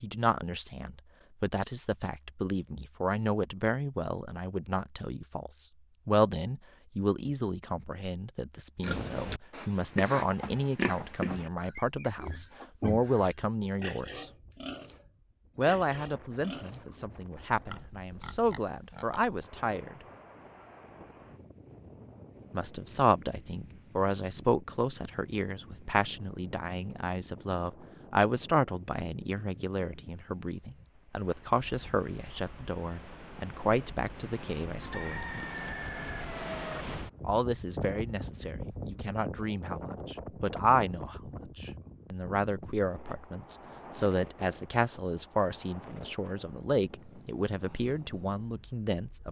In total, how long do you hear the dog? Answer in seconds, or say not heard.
not heard.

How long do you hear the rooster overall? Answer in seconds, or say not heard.
2 s.